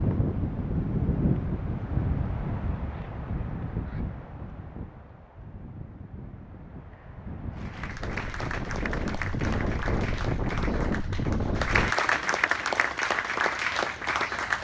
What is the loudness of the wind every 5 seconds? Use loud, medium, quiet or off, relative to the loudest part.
loud, medium, loud.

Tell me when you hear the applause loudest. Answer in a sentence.
The loudest moment of the applause is at 12 seconds.